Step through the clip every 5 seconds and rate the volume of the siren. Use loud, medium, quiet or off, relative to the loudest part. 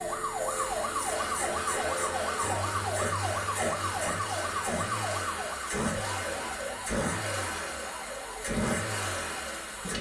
loud, medium.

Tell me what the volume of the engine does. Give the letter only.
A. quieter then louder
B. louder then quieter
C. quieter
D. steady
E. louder
D.